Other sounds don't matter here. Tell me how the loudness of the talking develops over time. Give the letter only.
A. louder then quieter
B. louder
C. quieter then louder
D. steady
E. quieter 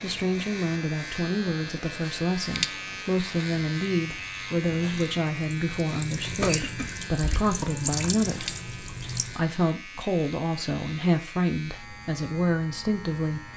D.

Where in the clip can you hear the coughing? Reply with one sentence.
You can hear the coughing from 6.4 to 7.4 s.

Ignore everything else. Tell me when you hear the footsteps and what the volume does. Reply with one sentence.
You can't hear the footsteps here.